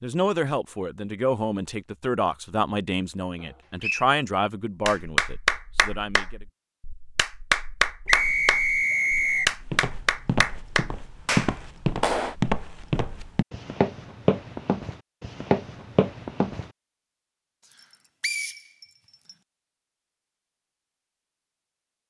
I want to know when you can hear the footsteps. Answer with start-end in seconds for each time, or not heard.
9.6-16.7.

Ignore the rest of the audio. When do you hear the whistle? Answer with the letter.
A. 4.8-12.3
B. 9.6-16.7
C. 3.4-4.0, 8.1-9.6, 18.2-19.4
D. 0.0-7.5
C.